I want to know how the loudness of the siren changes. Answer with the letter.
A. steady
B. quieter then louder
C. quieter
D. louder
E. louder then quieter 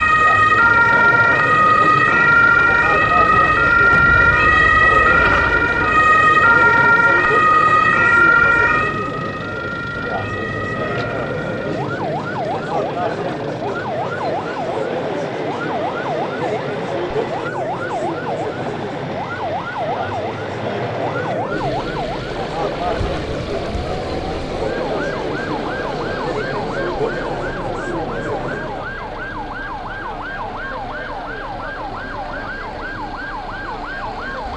C.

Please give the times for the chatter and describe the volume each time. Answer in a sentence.
You can hear the chatter from 0.0 to 29.0 s, at a steady volume.